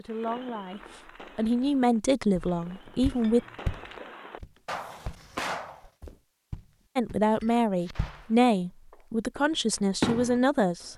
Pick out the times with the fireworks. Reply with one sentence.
The fireworks can be heard from 0.1 to 5.9 s and from 7.8 to 10.9 s.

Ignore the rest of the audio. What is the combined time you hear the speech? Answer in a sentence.
The speech can be heard for 7 seconds in total.